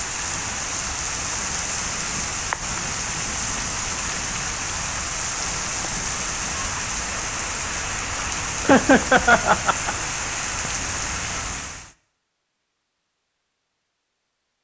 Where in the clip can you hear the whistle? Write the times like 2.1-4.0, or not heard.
not heard.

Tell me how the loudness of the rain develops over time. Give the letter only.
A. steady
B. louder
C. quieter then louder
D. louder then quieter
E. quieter
A.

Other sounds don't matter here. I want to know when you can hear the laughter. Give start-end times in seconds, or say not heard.
8.2-9.9.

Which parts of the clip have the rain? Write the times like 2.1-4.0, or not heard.
0.0-11.9.